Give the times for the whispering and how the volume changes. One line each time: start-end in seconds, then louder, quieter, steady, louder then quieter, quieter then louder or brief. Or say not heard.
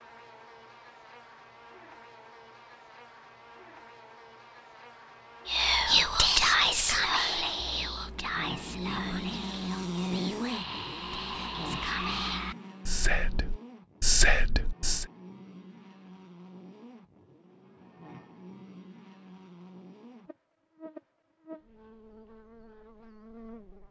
5.5-15.1 quieter then louder.